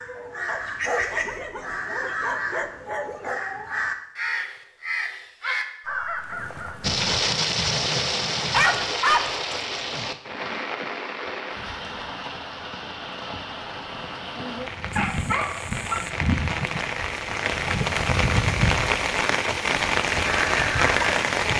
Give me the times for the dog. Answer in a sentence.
The dog can be heard from 0.5 to 3.4 s, from 8.5 to 10.1 s and from 14.9 to 16.1 s.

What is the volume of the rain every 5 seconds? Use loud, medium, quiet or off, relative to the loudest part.
off, loud, medium, loud, loud.